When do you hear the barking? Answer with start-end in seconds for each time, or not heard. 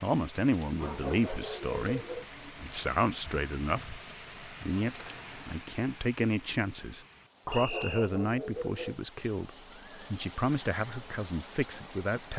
0.8-2.3, 7.5-9.0.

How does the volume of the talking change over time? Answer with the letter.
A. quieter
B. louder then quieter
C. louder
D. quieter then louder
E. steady
E.